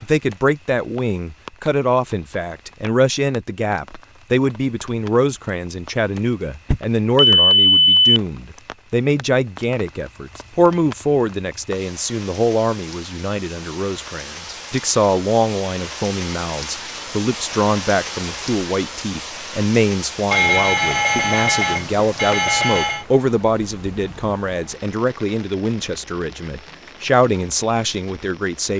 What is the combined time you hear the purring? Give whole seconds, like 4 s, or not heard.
not heard.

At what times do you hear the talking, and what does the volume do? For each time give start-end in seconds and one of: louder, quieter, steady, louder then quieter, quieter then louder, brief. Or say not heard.
0.0-28.7 steady.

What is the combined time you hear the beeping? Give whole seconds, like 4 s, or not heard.
4 s.